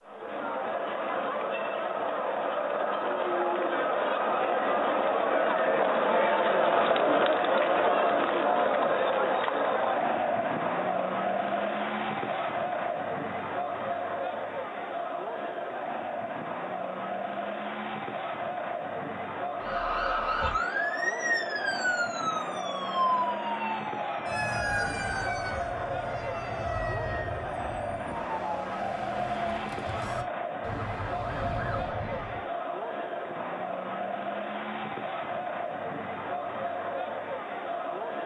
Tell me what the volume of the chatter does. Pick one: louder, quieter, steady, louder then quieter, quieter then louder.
quieter.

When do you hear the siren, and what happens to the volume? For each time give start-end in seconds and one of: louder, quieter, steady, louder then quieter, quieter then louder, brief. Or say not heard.
19.6-32.5 quieter.